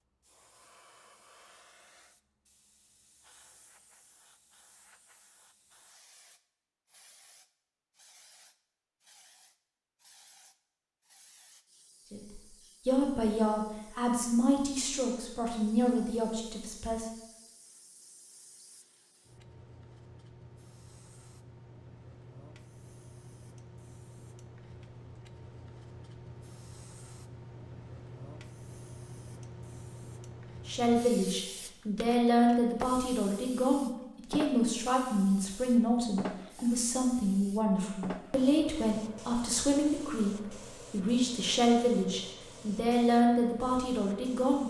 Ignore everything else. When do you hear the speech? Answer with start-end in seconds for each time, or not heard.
12.1-17.1, 30.6-44.6.